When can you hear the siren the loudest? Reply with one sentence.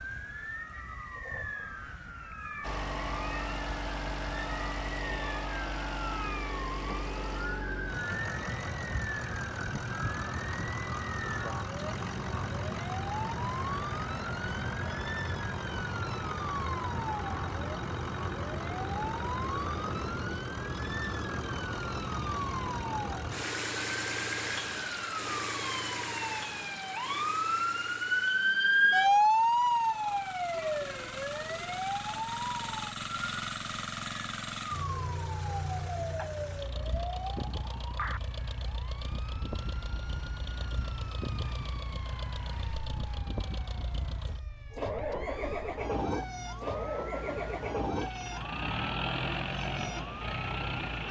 The volume of the siren peaks at 29 seconds.